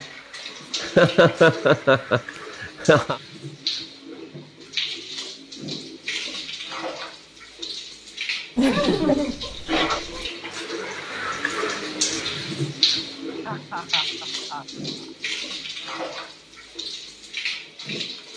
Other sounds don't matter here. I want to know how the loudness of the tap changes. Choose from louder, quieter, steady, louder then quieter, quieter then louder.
louder then quieter.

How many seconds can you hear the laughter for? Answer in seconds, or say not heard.
6 s.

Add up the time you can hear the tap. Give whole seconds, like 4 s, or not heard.
18 s.